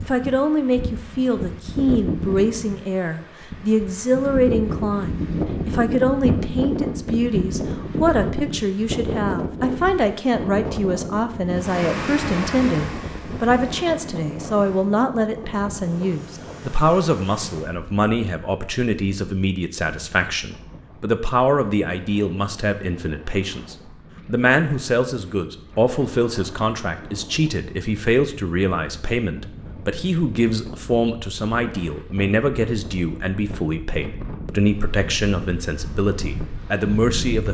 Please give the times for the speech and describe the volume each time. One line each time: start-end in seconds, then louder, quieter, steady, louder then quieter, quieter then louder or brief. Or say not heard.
0.0-37.4 steady.